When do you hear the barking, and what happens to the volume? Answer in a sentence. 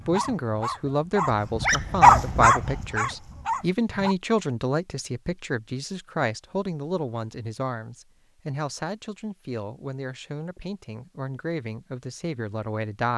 You can hear the barking from 0.0 to 4.2 s, getting louder then quieter.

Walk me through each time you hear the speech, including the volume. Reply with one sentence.
The speech can be heard from 0.1 to 13.1 s, getting quieter.